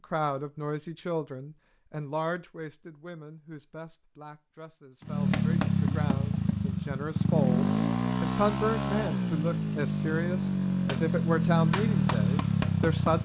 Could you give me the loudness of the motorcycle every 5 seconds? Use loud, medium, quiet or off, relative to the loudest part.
off, loud, loud.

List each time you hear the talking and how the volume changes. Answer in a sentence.
You can hear the talking from 0.0 to 13.2 s, getting quieter then louder.